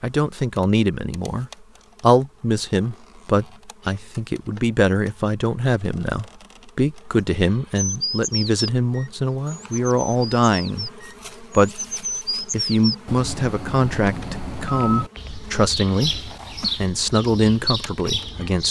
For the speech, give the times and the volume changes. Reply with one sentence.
You can hear the speech from 0.0 to 18.6 s, at a steady volume.